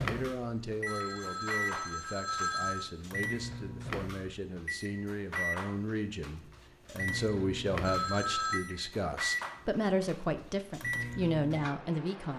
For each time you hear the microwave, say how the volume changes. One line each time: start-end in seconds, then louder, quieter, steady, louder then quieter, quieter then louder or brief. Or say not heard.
0.0-12.3 steady.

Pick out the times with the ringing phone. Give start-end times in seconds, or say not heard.
0.8-2.9, 7.8-8.6.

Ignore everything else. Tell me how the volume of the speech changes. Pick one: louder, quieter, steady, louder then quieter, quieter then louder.
louder.